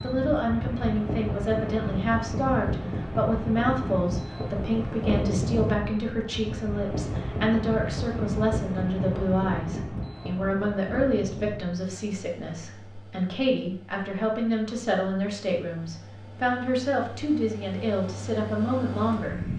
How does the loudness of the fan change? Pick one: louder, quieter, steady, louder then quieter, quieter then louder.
quieter then louder.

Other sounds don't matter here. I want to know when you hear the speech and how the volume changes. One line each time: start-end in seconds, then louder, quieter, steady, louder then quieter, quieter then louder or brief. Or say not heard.
0.0-19.4 steady.